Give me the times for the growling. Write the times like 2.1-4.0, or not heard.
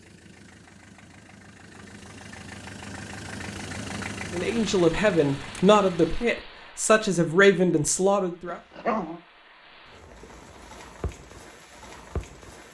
8.4-9.2.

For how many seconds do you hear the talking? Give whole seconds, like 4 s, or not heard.
4 s.